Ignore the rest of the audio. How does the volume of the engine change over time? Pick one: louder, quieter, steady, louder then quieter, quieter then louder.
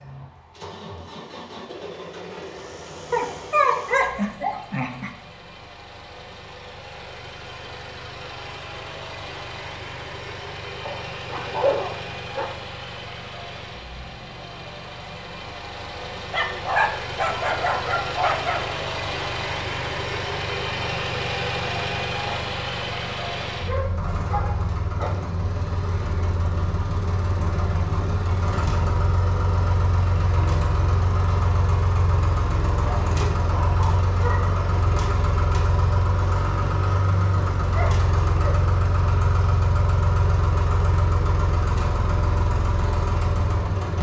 louder.